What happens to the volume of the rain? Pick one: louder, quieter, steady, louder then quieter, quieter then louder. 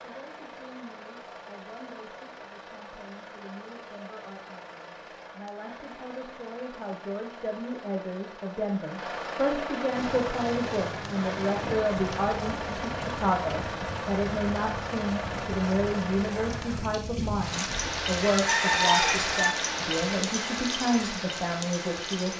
louder.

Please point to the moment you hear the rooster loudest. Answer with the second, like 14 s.
19 s.